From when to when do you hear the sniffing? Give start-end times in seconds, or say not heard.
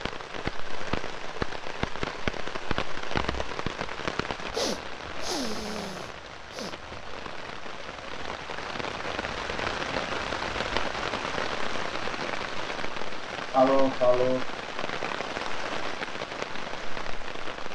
4.5-6.8, 13.5-14.4.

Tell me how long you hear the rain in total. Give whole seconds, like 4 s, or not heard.
18 s.